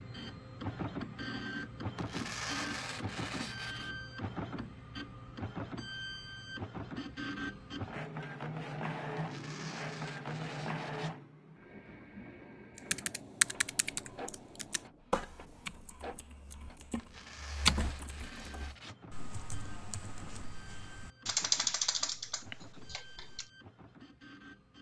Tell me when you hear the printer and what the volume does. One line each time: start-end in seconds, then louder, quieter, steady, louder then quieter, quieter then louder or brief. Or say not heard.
0.0-24.7 quieter.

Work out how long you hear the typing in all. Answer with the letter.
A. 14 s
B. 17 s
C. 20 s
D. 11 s
D.